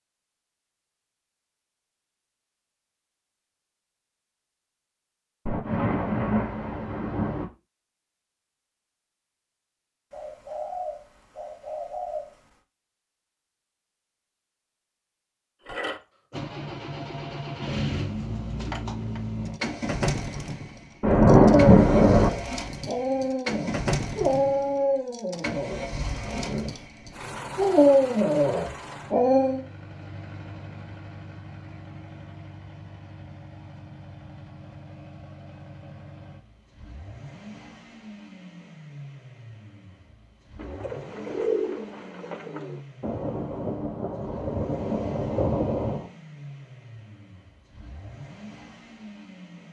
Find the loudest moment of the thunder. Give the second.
21 s.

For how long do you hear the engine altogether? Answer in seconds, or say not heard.
34 s.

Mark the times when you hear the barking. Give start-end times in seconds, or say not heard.
21.4-29.6.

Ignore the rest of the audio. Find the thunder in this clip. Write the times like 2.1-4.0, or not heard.
5.5-7.5, 21.0-22.3, 43.0-46.1.